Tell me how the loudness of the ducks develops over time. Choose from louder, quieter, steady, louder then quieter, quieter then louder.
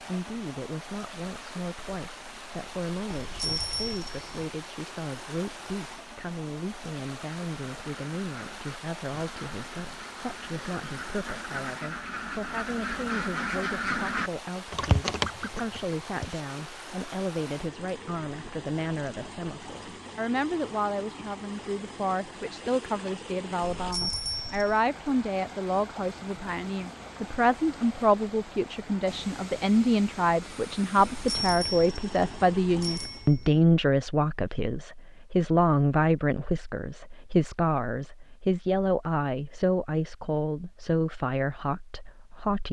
louder.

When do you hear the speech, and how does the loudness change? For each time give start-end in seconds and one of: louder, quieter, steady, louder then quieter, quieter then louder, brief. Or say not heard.
0.0-42.6 louder.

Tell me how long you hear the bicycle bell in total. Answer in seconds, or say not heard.
5 s.